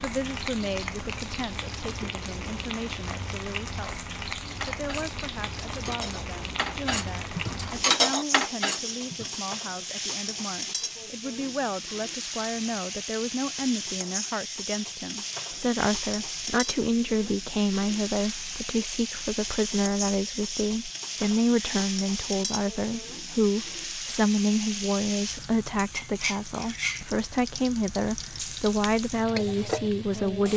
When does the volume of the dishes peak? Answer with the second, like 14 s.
8 s.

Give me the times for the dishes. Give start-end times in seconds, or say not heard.
4.6-9.5.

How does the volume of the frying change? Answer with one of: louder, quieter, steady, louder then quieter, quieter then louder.
steady.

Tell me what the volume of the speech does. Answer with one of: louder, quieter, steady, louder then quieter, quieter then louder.
louder.